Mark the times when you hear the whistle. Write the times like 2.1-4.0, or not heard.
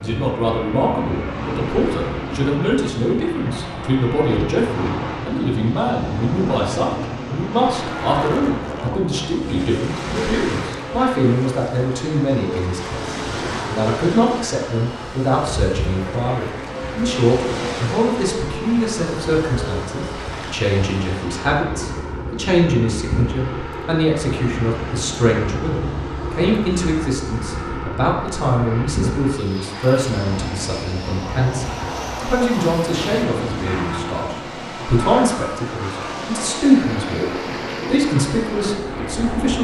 not heard.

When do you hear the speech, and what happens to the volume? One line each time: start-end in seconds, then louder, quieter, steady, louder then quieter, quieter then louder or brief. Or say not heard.
0.0-39.5 steady.